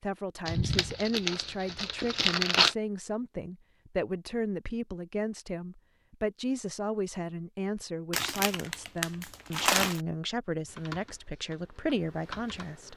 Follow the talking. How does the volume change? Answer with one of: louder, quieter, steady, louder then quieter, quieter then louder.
steady.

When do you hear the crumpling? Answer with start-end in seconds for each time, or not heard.
0.5-2.8, 8.1-10.0.